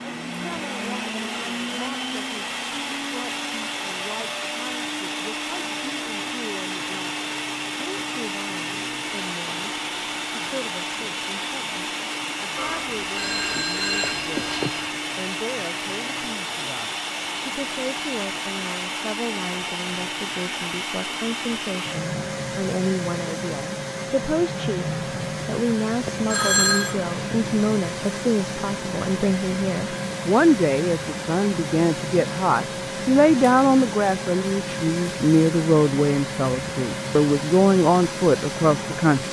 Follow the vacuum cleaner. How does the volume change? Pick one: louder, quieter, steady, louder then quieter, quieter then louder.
steady.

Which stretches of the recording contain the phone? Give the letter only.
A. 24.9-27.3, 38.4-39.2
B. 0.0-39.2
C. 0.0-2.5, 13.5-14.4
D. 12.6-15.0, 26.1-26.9
D.